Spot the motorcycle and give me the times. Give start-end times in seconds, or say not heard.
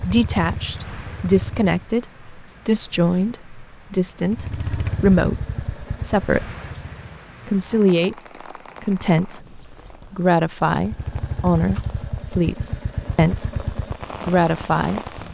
0.0-1.9, 4.2-7.1, 10.7-15.2.